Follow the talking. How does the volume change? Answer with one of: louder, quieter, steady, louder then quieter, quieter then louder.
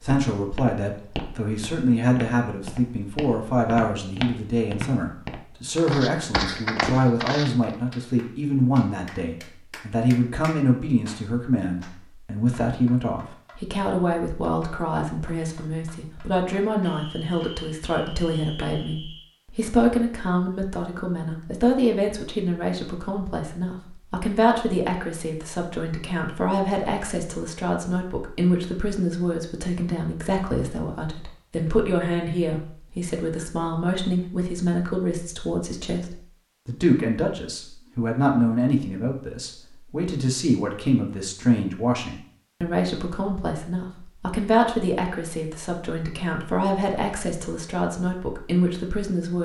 steady.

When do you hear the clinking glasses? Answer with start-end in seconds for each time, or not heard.
not heard.